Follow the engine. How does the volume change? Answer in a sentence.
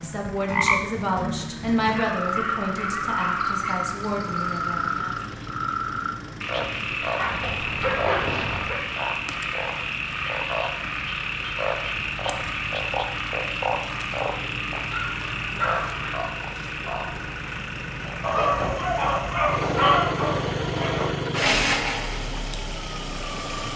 The volume of the engine goes up.